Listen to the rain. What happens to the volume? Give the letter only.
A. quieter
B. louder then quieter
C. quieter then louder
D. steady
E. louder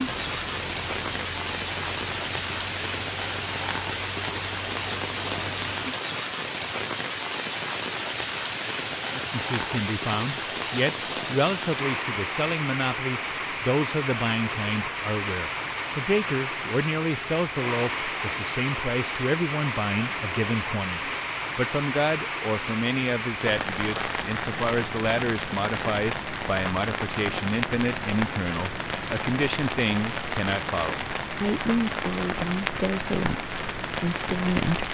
D.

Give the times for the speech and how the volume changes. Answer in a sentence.
The speech can be heard from 9.1 to 34.8 s, at a steady volume.